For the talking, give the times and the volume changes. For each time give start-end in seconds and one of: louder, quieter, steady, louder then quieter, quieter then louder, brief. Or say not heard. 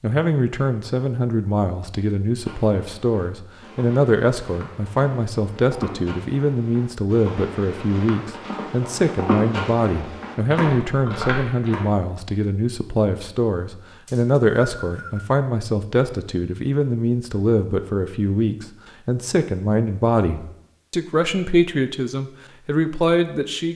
0.0-23.7 steady.